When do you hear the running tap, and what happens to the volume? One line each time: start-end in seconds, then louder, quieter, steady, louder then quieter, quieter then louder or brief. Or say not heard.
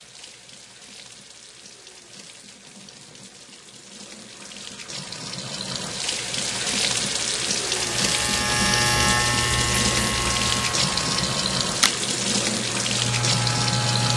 0.0-14.1 louder.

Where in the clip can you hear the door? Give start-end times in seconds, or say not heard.
not heard.